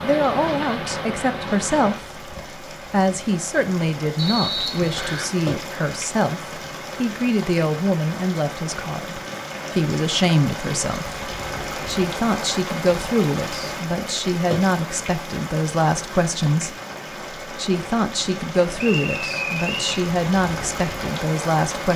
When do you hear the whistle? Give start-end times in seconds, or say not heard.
4.2-5.3, 18.8-20.1.